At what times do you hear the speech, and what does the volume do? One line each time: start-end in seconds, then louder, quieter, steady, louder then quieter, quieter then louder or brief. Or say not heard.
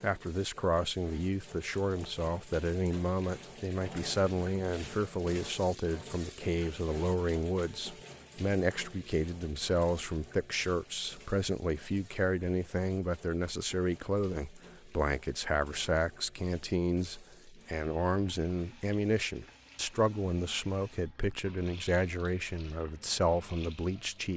0.0-24.3 steady.